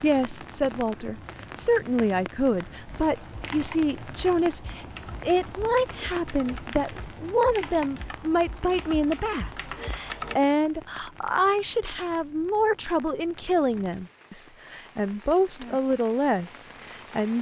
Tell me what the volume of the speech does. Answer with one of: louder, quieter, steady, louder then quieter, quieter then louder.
steady.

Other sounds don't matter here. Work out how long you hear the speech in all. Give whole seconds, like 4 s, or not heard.
17 s.